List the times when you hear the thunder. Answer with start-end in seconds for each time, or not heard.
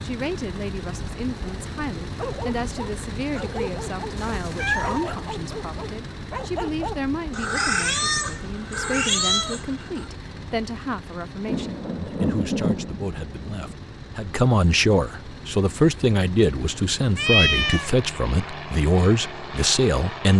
11.4-13.8.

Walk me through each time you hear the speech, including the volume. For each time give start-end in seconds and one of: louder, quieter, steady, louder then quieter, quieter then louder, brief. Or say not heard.
0.0-20.3 louder.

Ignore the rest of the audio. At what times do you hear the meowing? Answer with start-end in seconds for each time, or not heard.
4.2-5.1, 7.3-10.1, 17.1-17.9.